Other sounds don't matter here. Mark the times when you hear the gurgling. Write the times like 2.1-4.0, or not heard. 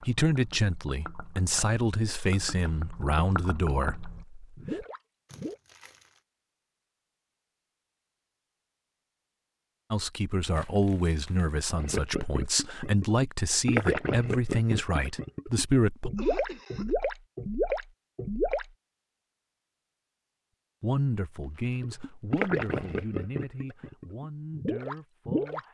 0.0-5.6, 11.8-18.7, 21.8-25.6.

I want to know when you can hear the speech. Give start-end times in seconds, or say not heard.
0.0-4.8, 9.9-16.1, 20.8-25.6.